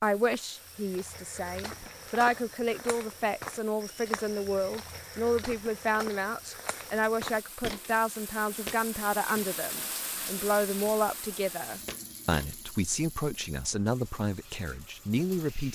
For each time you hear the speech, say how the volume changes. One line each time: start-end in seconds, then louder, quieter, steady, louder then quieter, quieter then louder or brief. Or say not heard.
0.0-15.6 steady.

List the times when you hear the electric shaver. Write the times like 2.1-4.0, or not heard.
not heard.